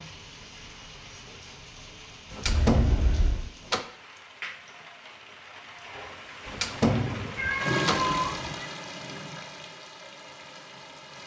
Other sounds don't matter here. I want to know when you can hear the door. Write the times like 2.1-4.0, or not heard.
2.3-3.9, 6.5-8.2.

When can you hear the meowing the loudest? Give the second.
8 s.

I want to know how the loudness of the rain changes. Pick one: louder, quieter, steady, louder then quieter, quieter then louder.
louder then quieter.